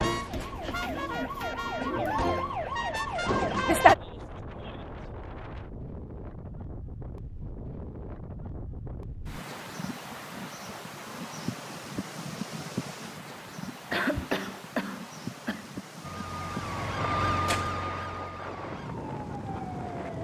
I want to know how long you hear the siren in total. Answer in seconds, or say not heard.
8 s.